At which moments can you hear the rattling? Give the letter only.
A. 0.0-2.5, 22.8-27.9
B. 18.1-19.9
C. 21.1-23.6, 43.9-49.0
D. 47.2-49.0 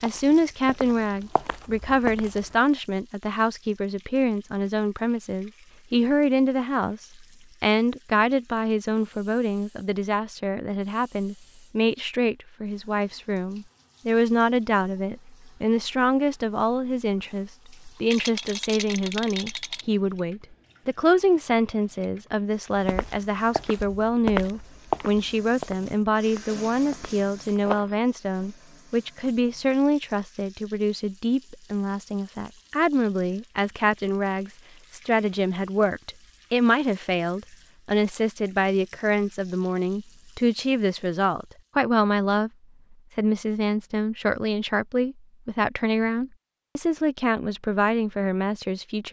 B.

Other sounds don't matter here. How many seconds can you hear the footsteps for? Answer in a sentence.
You can hear the footsteps for 8 seconds altogether.